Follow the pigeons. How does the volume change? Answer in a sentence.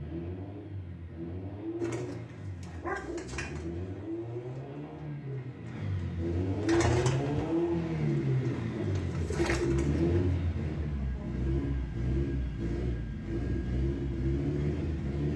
The volume of the pigeons goes down, then up.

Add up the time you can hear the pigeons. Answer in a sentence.
The pigeons can be heard for 8 seconds in total.